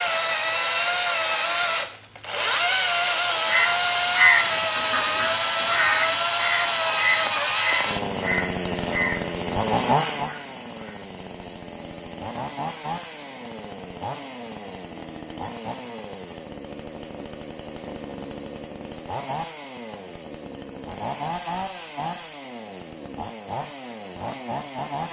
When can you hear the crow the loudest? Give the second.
4 s.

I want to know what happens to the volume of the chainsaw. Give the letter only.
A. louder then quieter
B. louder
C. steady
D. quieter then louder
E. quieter
E.